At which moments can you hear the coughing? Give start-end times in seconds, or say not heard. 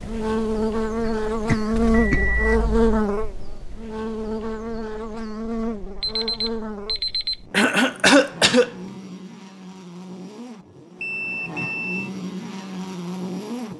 1.1-2.2, 7.5-8.7.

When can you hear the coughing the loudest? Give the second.
8 s.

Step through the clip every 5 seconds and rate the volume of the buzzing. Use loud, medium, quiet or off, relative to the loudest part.
loud, medium, medium.